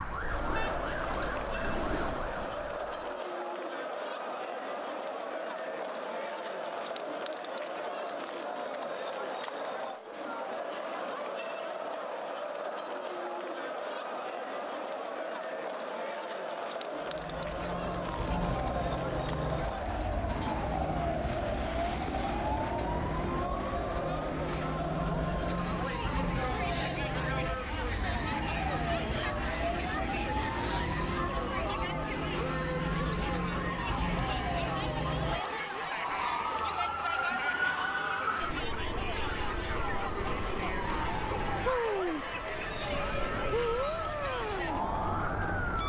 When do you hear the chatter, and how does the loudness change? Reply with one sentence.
The chatter can be heard from 0.0 to 45.8 s, at a steady volume.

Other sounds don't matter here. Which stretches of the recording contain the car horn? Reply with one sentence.
The car horn can be heard from 0.5 to 0.9 s.